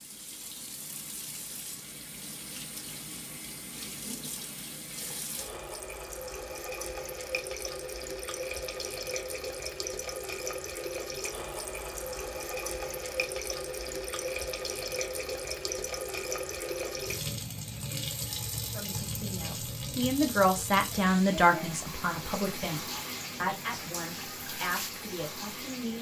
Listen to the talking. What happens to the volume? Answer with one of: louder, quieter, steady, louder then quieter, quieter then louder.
louder then quieter.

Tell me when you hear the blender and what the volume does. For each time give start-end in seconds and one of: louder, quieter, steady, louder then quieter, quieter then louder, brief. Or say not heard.
not heard.